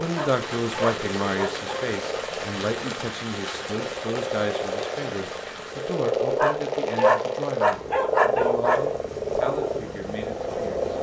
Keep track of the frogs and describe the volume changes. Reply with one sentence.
The volume of the frogs goes up.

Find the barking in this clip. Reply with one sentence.
You can hear the barking from 0.1 to 1.9 s and from 6.3 to 8.8 s.